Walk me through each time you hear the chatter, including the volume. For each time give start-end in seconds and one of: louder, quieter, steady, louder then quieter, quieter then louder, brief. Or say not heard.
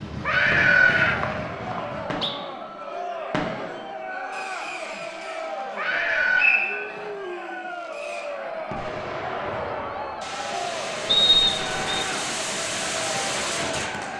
0.2-14.1 steady.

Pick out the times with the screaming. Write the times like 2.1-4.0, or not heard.
0.2-1.2, 5.8-6.6, 9.7-10.5.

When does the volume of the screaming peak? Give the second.
1 s.